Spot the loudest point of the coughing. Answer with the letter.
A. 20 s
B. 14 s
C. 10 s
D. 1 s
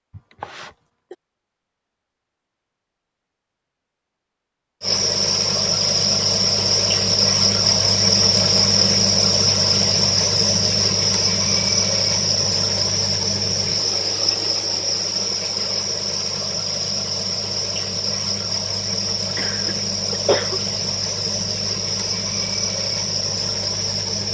A.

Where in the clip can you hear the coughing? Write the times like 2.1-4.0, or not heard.
0.1-1.1, 19.4-20.6.